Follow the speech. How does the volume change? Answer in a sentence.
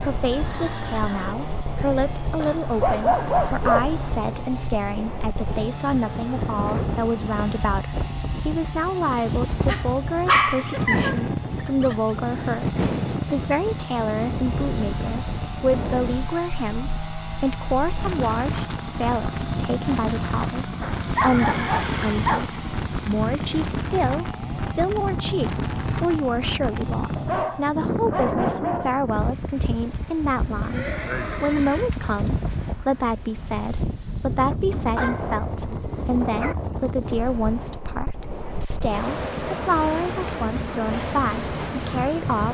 The loudness of the speech stays about the same.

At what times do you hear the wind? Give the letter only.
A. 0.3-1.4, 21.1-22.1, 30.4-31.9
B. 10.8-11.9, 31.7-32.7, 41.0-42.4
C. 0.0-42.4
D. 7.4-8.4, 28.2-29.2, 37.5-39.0
C.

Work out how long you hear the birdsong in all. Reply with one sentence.
The birdsong can't be heard in this clip.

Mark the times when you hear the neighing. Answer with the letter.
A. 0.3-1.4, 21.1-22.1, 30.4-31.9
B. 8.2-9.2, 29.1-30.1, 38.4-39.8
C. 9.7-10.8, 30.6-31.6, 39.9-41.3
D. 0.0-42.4
A.